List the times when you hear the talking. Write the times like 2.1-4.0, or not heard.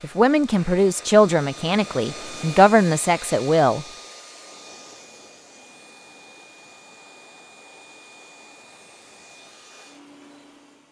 0.0-3.9.